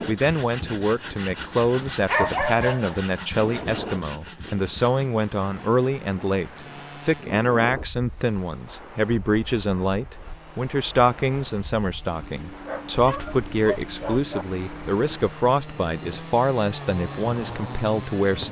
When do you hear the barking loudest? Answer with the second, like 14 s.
2 s.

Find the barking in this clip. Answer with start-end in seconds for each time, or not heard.
2.0-3.6, 12.7-14.4.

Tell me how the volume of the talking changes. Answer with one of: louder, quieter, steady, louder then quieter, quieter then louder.
steady.